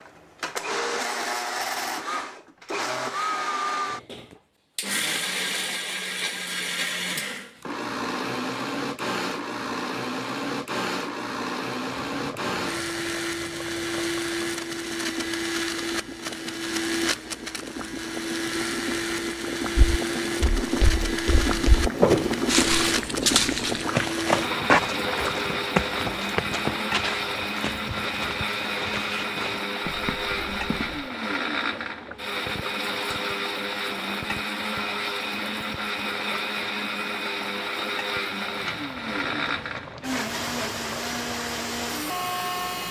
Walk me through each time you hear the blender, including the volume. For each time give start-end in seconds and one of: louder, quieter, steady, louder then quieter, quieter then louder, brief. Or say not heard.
0.0-42.8 steady.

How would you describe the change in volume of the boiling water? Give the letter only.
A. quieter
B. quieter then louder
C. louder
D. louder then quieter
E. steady
D.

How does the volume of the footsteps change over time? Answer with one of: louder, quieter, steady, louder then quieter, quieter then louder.
quieter.